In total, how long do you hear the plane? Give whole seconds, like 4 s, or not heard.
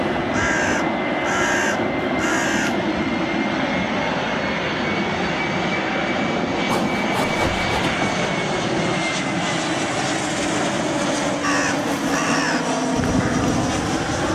14 s.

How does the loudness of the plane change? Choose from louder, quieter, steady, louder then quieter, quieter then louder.
steady.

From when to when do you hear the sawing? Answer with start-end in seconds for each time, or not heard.
6.7-8.3.